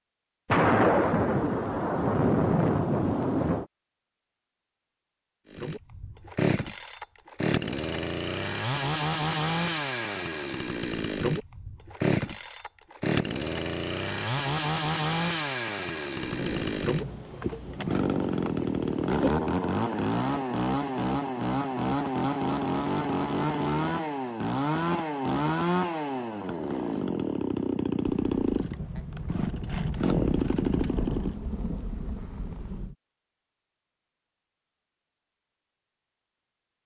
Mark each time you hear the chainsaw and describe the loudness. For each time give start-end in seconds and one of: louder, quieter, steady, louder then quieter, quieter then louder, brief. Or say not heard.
5.5-31.4 steady.